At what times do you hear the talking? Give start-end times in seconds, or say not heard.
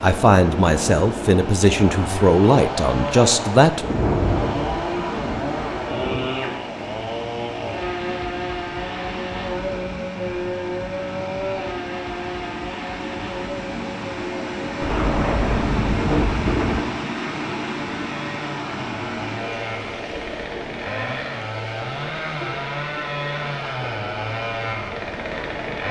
0.0-3.9.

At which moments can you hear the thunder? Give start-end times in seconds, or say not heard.
3.8-6.3, 14.8-16.9.